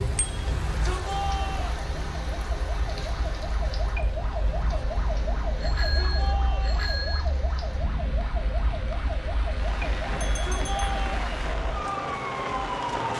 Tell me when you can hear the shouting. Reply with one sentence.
The shouting can be heard from 0.5 to 1.9 s, from 5.5 to 6.9 s and from 10.2 to 11.2 s.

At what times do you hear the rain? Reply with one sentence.
The rain can be heard from 0.0 to 13.1 s.